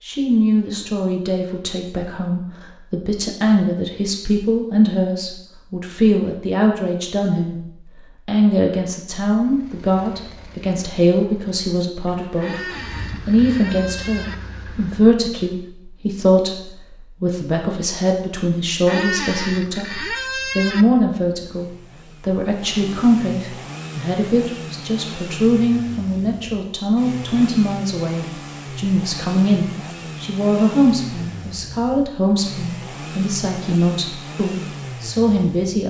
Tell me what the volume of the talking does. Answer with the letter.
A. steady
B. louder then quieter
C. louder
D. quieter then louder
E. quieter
A.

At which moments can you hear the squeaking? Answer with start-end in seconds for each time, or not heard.
12.4-14.3, 18.9-20.9.